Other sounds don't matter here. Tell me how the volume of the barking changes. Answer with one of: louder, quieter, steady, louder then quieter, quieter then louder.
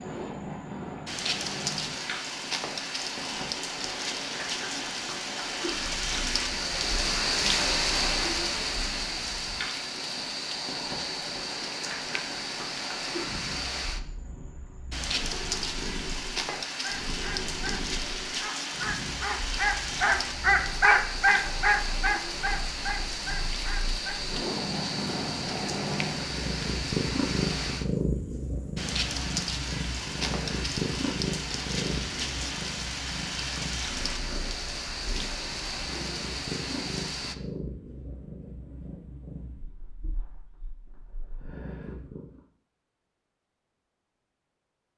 louder then quieter.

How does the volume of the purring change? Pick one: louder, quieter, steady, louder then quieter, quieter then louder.
louder then quieter.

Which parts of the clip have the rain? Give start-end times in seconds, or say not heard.
0.0-37.4.